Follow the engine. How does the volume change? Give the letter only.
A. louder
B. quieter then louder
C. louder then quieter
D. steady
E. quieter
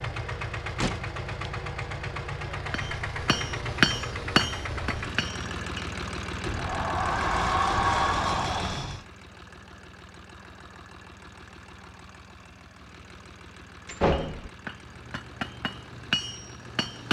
E.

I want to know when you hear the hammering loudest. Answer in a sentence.
The volume of the hammering peaks at 4 seconds.